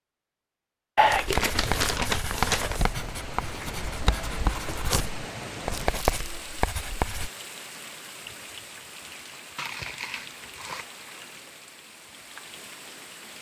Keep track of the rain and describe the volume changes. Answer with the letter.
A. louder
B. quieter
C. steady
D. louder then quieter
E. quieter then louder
B.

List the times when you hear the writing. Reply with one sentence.
You can hear the writing from 1.1 to 7.3 s.